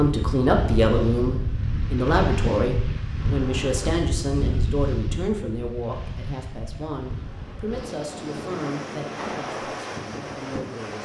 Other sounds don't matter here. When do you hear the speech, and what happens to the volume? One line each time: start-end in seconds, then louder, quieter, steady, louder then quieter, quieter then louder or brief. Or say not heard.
0.0-11.0 quieter.